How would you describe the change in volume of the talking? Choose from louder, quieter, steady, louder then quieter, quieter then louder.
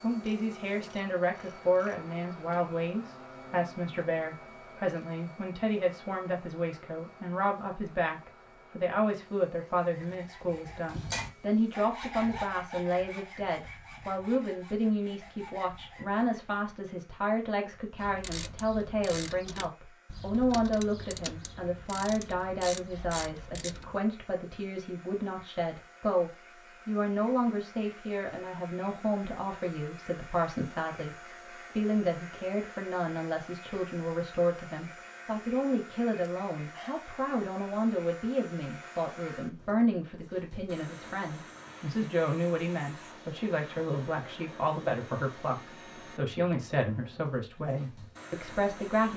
steady.